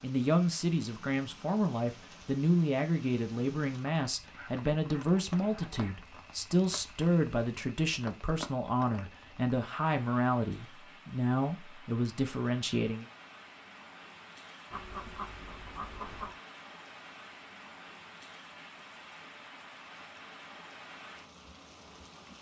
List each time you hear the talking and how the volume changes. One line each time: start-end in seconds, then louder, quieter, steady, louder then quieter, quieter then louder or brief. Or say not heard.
0.0-13.1 steady.